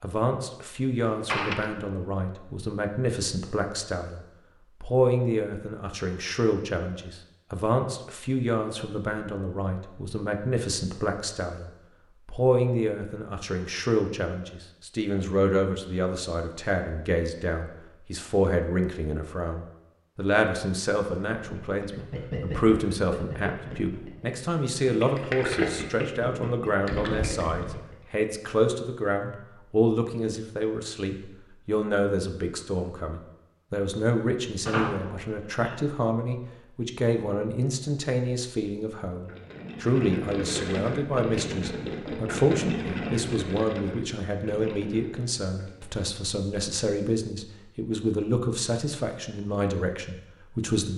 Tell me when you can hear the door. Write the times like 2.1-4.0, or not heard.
1.2-1.8, 34.6-35.9.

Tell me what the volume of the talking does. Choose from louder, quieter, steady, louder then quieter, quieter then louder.
steady.